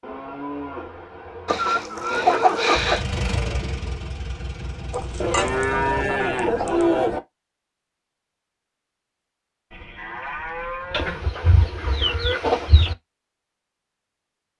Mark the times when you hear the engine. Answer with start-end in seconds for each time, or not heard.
2.7-6.1.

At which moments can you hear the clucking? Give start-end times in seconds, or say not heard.
1.4-3.0, 4.9-6.9, 10.9-12.9.